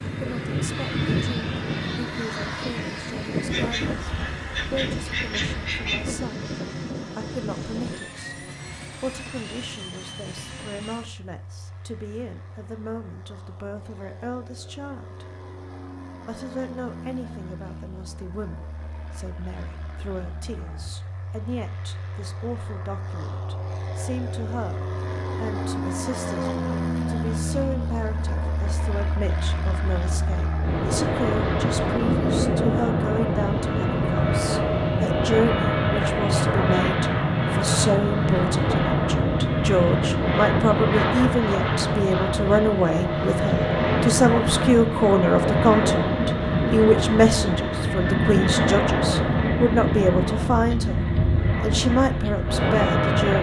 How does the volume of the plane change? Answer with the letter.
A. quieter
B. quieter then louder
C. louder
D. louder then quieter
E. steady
B.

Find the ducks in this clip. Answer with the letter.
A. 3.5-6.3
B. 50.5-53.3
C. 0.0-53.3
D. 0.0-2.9
A.